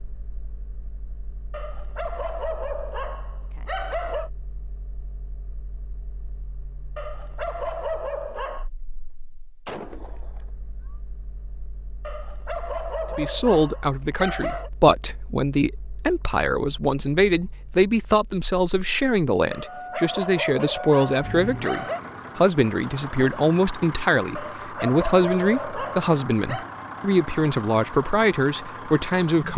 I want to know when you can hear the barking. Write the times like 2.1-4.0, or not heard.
1.5-4.3, 7.0-8.7, 12.1-14.7, 19.5-22.0, 24.4-26.6.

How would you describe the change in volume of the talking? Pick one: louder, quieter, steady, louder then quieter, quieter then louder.
steady.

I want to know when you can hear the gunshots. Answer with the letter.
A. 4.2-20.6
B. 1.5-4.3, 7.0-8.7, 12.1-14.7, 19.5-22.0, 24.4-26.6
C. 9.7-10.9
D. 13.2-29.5
C.